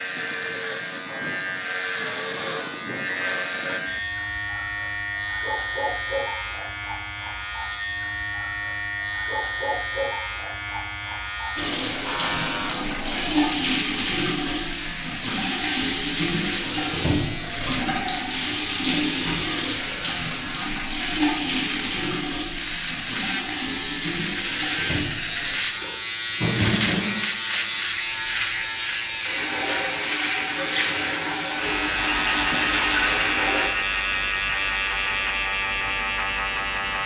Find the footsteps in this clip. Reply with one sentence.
You can't hear the footsteps here.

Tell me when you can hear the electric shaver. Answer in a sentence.
The electric shaver can be heard from 0.0 to 37.0 s.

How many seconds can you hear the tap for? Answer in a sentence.
You can hear the tap for 22 seconds altogether.